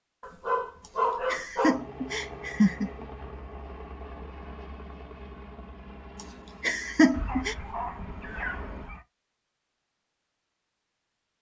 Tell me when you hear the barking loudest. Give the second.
1 s.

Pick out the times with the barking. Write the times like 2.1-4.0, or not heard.
0.2-1.8, 7.1-9.1.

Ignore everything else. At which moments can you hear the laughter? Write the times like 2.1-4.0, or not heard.
0.8-2.9, 6.2-7.5.